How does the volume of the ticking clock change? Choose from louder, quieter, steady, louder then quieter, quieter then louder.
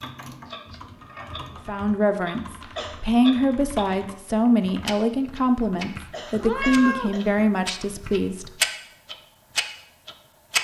louder.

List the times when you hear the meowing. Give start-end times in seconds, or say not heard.
0.3-1.3, 6.4-7.2.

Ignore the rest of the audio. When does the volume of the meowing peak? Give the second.
7 s.